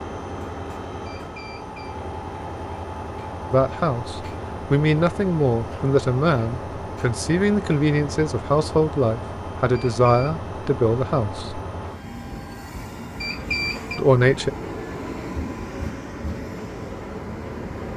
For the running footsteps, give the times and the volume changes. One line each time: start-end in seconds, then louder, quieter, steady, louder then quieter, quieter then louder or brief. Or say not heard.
not heard.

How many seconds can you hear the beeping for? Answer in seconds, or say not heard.
2 s.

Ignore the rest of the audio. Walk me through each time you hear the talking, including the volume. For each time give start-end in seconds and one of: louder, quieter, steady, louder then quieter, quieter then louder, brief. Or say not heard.
3.5-11.6 steady
13.9-14.5 brief.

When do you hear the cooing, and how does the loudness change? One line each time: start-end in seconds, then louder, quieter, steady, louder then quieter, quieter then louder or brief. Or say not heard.
not heard.